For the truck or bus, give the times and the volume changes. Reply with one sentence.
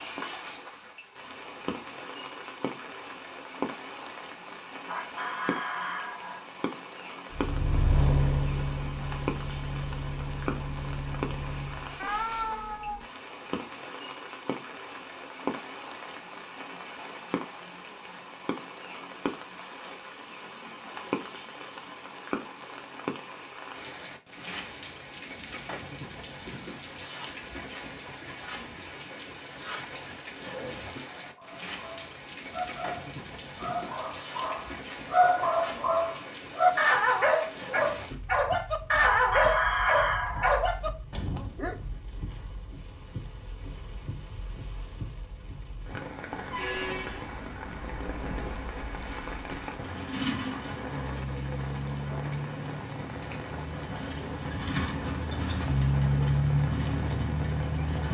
You can hear the truck or bus from 7.3 to 12.1 s, getting quieter; and from 46.4 to 58.0 s, getting louder.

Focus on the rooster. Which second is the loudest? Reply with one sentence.
The volume of the rooster peaks at 40 seconds.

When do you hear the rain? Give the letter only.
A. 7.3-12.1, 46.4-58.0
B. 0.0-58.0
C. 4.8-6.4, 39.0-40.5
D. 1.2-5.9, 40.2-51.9
B.